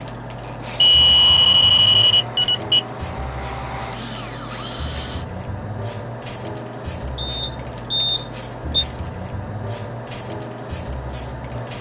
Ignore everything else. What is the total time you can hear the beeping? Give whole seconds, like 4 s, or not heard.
4 s.